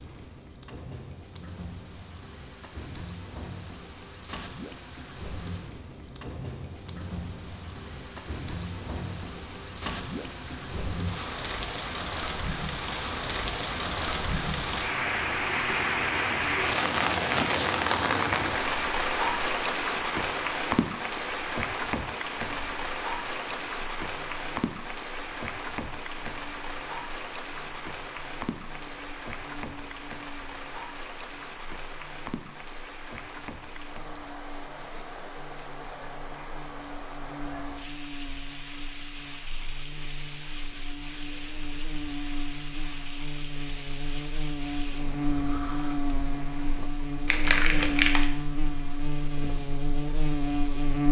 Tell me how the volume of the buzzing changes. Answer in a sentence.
The loudness of the buzzing goes up.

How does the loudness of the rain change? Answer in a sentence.
The loudness of the rain goes up, then down.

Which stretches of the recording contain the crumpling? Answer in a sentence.
The crumpling can be heard from 47.2 to 48.3 s.